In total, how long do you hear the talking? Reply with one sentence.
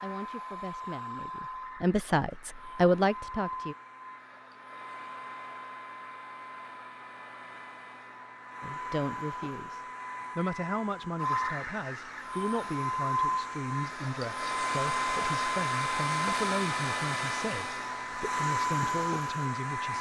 You can hear the talking for 15 seconds altogether.